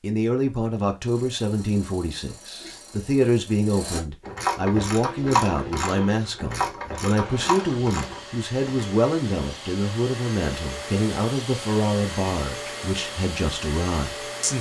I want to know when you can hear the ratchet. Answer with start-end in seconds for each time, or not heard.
1.1-8.8.